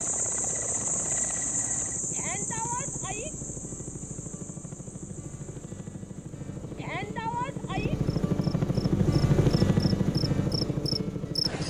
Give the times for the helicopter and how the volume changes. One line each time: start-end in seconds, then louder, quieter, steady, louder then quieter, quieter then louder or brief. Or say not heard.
0.0-11.6 louder.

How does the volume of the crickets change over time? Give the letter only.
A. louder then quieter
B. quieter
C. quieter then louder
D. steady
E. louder
C.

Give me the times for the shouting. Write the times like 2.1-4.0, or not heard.
2.1-3.3, 6.8-8.0.